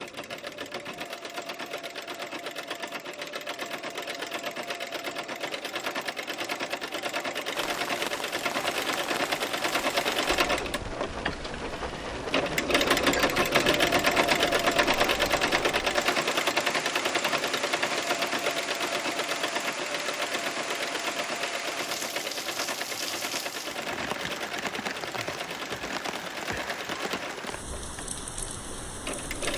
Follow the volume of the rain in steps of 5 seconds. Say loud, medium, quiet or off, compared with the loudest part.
off, loud, loud, loud, loud, loud.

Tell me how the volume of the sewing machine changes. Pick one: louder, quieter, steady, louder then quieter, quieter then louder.
louder then quieter.